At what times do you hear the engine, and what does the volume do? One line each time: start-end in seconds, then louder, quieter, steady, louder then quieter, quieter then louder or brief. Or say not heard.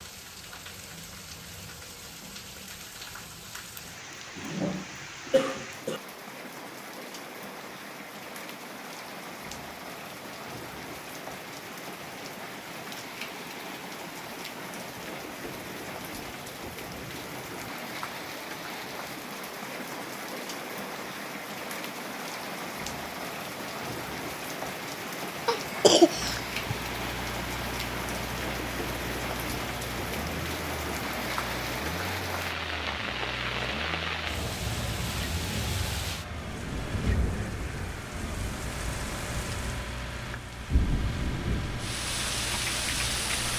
26.1-43.5 steady.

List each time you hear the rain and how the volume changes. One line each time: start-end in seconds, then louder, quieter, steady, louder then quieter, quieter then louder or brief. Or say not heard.
0.0-43.5 louder.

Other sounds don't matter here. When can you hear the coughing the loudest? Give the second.
26 s.